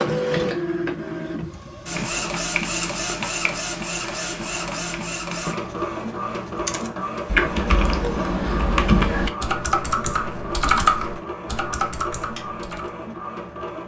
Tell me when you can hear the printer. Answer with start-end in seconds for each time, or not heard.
0.0-13.8.